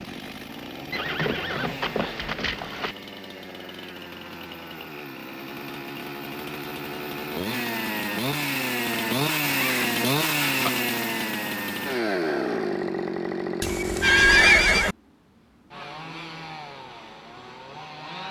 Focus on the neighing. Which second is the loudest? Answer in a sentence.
The loudest moment of the neighing is at 14 seconds.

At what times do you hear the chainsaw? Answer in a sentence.
You can hear the chainsaw from 0.0 to 18.2 s.